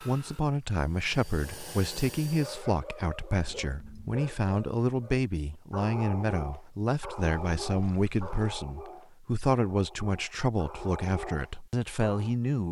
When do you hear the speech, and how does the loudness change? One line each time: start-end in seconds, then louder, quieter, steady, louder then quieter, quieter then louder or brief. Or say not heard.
0.0-12.6 steady.